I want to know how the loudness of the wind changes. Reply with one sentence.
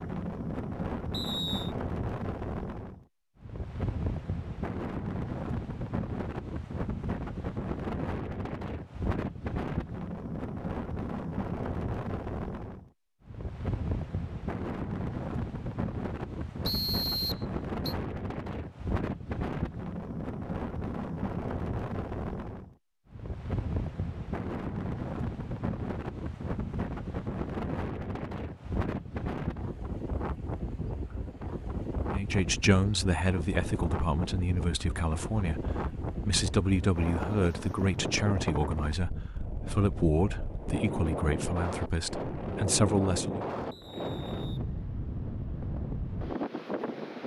The volume of the wind stays about the same.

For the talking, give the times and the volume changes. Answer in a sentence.
The talking can be heard from 32.1 to 43.5 s, at a steady volume.